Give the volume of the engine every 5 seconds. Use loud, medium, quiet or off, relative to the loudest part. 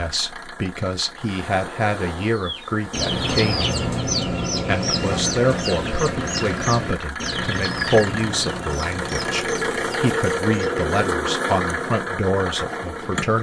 medium, loud, loud.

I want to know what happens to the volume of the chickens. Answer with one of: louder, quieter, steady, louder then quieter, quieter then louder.
quieter.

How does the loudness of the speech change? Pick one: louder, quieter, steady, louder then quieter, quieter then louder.
steady.